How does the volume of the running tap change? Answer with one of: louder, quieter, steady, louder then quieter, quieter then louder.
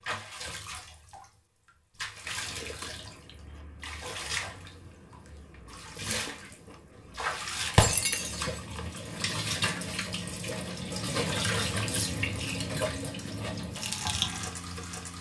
louder.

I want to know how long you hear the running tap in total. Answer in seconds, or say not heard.
15 s.